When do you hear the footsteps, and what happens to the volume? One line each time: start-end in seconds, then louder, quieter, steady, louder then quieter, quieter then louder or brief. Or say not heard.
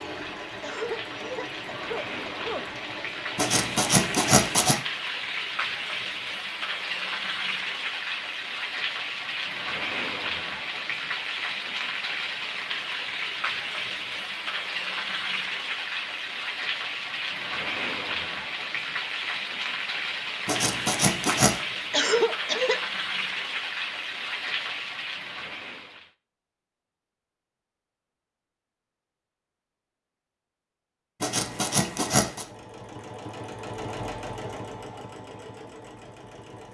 not heard.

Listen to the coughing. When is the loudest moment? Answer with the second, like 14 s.
22 s.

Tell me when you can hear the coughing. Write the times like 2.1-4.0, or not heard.
0.6-2.6, 21.9-22.8.